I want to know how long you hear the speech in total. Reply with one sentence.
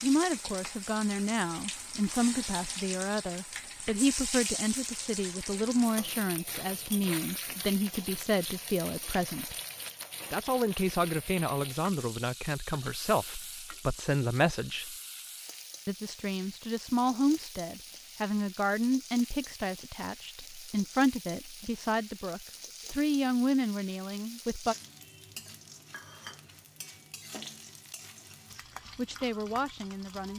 You can hear the speech for 25 seconds altogether.